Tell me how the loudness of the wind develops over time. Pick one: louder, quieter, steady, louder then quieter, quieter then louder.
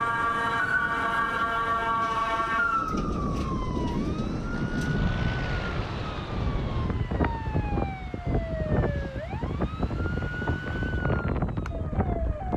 louder.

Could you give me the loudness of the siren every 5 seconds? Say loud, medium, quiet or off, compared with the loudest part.
loud, medium, medium.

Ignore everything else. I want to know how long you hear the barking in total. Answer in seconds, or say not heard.
not heard.